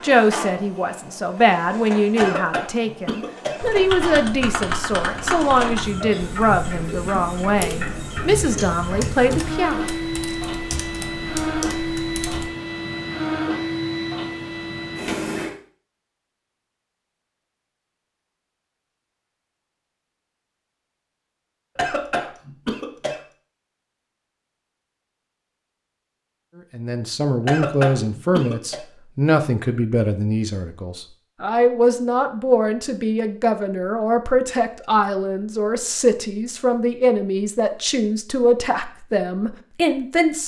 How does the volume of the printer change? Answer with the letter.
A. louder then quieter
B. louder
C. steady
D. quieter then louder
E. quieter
B.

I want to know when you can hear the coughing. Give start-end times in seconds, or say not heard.
2.1-3.6, 21.8-23.2, 27.4-28.8.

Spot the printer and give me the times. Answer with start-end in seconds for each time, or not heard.
0.0-15.5.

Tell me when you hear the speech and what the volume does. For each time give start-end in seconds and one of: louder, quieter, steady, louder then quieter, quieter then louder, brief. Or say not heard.
0.0-9.8 steady
26.8-40.4 steady.